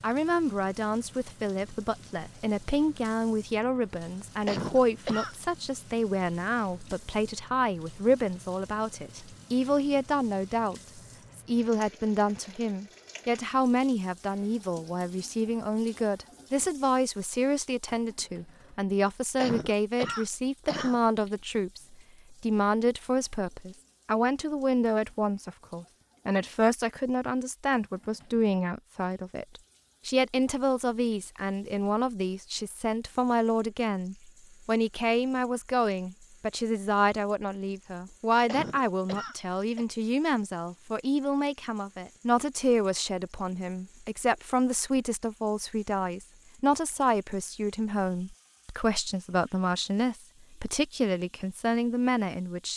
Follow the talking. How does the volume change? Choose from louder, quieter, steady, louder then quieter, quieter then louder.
steady.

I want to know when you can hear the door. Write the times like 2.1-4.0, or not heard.
not heard.